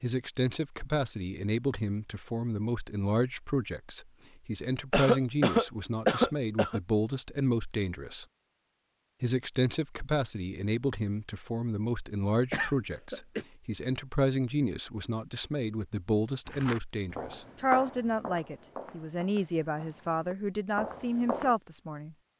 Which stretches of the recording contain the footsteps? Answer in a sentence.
The footsteps can be heard from 16.4 to 21.6 s.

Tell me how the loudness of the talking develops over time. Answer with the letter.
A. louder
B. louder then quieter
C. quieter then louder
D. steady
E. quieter
D.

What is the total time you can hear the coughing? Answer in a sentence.
You can hear the coughing for 3 seconds altogether.